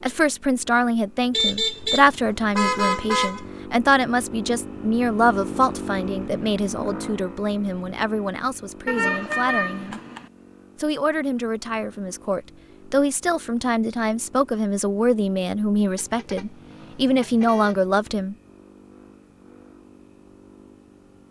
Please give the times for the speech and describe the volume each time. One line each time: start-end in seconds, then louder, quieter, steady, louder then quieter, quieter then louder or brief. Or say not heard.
0.0-10.0 quieter
10.8-18.4 louder.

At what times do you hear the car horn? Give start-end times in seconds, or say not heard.
1.3-3.5, 8.8-10.2, 15.9-17.8.